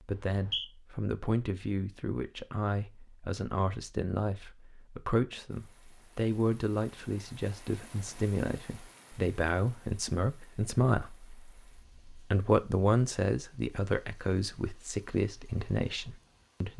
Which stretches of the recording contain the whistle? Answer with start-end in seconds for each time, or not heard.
0.1-0.7.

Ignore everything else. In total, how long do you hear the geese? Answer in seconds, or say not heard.
not heard.